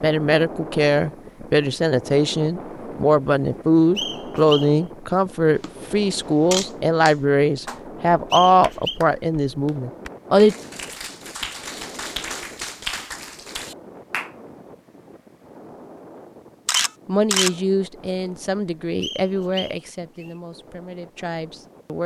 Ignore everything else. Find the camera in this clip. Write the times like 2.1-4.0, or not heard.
5.5-7.2, 16.6-17.5.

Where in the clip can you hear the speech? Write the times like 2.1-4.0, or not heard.
0.0-10.6, 17.1-22.0.